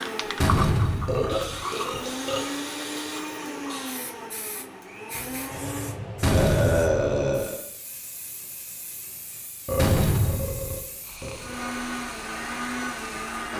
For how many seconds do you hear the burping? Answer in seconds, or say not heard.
5 s.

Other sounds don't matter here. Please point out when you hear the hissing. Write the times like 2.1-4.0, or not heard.
0.0-13.5.